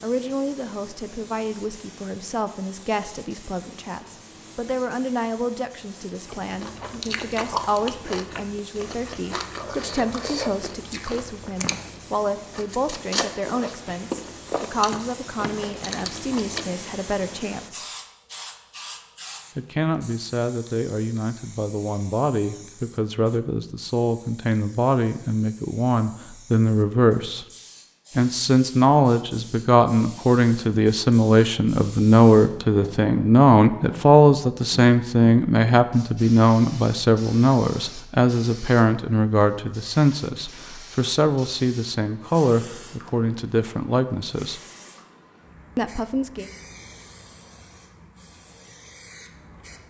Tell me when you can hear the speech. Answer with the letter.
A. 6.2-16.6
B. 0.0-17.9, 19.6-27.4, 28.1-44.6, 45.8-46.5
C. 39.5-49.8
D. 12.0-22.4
B.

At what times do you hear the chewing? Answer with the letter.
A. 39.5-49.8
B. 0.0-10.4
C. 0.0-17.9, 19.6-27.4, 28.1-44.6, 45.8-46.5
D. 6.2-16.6
D.